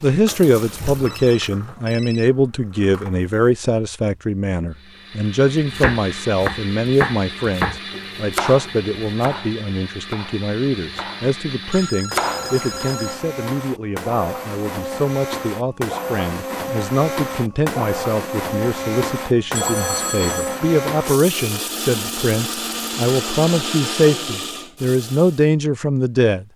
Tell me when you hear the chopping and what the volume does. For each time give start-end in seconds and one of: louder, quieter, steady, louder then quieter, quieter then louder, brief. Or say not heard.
5.6-12.8 quieter then louder.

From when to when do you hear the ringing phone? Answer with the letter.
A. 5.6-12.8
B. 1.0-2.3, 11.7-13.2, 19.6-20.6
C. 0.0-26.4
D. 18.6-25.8
B.